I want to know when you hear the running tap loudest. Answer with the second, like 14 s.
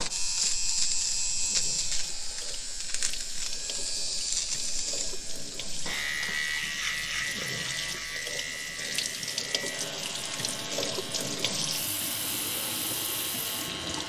11 s.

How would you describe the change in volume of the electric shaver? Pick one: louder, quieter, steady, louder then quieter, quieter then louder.
quieter.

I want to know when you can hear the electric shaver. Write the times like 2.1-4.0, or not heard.
0.0-14.0.